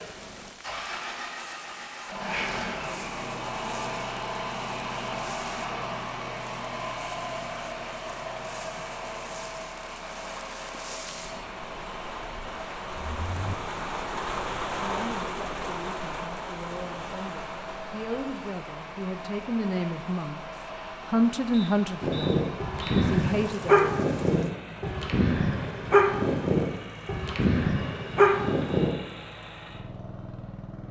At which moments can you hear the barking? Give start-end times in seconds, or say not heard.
22.0-28.9.